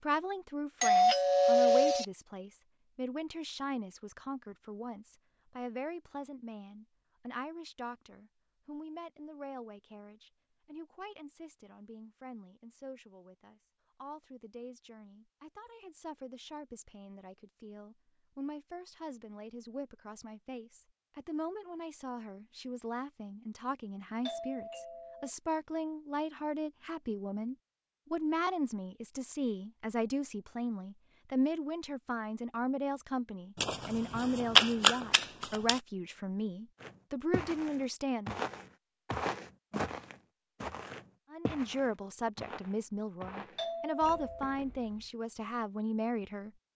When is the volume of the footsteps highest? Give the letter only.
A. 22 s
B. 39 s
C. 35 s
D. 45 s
B.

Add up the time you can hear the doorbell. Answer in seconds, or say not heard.
3 s.